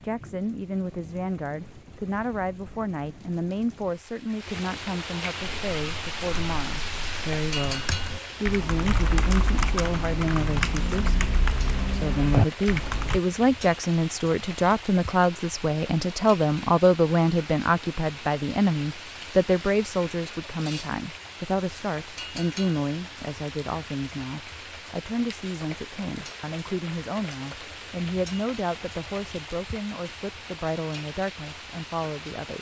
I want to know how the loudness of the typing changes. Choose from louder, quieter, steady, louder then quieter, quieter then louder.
louder.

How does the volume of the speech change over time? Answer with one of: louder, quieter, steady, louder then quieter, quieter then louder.
louder then quieter.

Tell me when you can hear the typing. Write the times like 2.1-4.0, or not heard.
5.7-13.2.